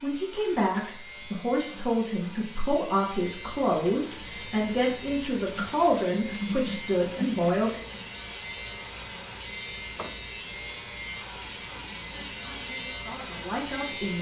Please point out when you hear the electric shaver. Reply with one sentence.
The electric shaver can be heard from 0.0 to 14.1 s.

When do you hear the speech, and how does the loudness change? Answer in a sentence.
You can hear the speech from 0.0 to 7.8 s, at a steady volume; and briefly from 12.1 to 14.1 s.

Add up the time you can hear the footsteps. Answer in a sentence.
You can't hear the footsteps here.